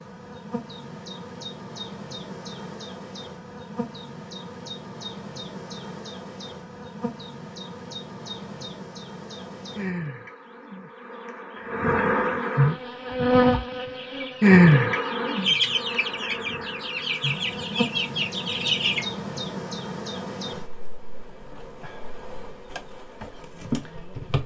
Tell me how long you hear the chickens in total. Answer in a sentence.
You can hear the chickens for 6 seconds altogether.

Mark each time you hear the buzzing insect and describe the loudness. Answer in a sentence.
You can hear the buzzing insect from 0.0 to 24.4 s, getting louder then quieter.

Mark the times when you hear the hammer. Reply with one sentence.
You can't hear the hammer here.